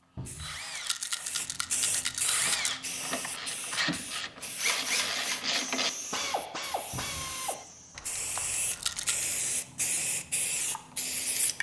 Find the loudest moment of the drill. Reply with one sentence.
The loudest moment of the drill is at 5 seconds.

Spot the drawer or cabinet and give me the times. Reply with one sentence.
You can hear the drawer or cabinet from 0.1 to 0.6 s and from 6.9 to 7.3 s.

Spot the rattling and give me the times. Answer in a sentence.
The rattling can be heard from 0.8 to 2.8 s and from 8.7 to 9.3 s.